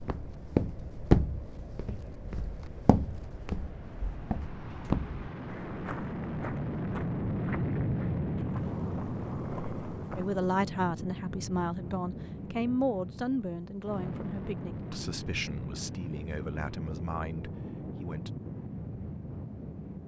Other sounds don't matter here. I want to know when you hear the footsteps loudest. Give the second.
1 s.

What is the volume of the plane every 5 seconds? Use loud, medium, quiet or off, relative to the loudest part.
quiet, loud, medium, medium.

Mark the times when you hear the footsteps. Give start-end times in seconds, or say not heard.
0.0-10.4.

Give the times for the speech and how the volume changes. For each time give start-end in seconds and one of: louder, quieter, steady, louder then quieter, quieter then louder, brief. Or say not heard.
10.2-18.3 quieter.